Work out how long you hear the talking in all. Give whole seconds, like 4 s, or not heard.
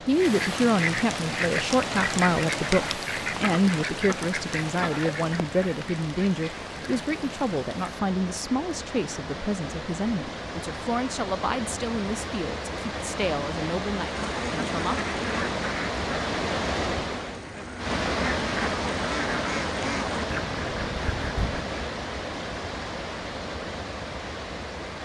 15 s.